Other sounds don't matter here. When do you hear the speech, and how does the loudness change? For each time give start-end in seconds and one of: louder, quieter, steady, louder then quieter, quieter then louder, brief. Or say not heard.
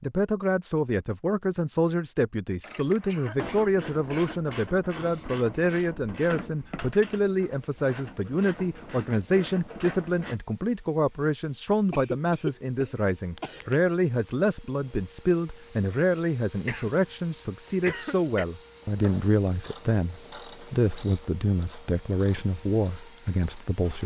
0.0-24.0 steady.